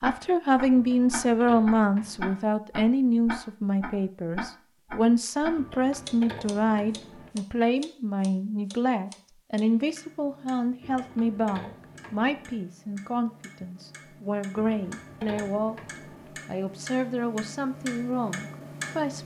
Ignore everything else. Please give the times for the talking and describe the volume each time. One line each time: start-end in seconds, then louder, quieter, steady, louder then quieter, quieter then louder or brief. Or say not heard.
0.0-15.8 quieter
16.4-19.2 brief.